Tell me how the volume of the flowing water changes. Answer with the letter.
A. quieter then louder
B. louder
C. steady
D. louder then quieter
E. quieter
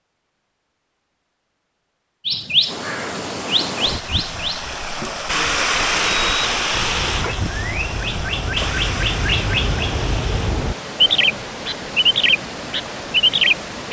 D.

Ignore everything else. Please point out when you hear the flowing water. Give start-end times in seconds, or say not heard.
2.6-13.8.